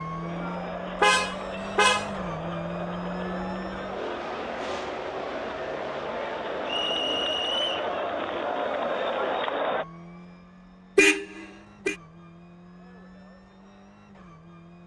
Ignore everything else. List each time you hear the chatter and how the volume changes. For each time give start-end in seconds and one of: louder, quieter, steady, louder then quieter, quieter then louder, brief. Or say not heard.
0.0-9.8 louder.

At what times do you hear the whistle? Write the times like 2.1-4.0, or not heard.
6.7-7.9.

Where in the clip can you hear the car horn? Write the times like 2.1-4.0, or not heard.
1.0-2.1, 10.9-11.9.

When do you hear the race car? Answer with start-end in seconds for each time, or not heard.
0.0-14.8.